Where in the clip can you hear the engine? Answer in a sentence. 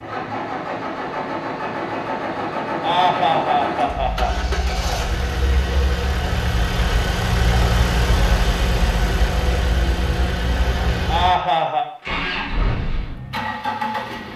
The engine can be heard from 0.0 to 14.3 s.